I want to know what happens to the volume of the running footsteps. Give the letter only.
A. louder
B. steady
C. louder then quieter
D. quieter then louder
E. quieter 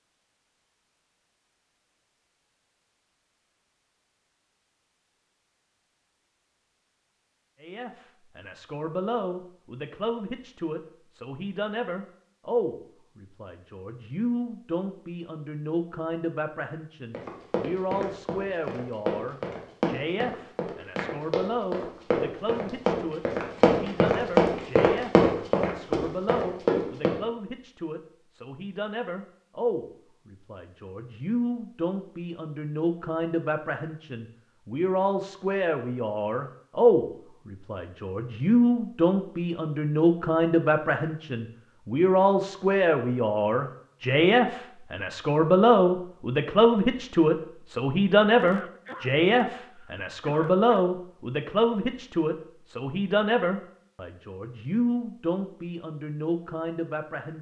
A.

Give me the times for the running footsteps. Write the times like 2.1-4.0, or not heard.
17.1-27.2.